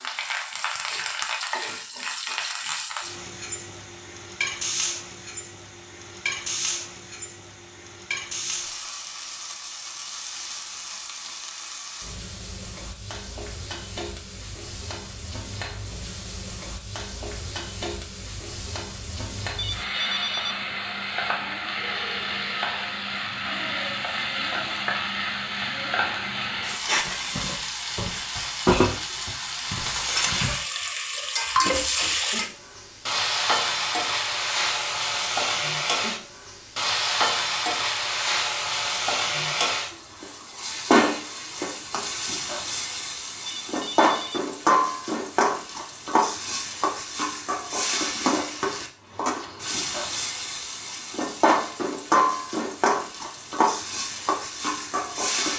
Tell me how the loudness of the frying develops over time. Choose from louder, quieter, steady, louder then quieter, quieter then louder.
louder.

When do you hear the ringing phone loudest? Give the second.
20 s.